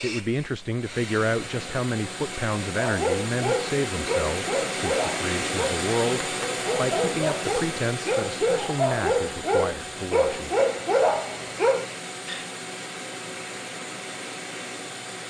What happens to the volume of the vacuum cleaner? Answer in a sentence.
The loudness of the vacuum cleaner goes up, then down.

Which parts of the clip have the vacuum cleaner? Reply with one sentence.
You can hear the vacuum cleaner from 0.0 to 15.2 s.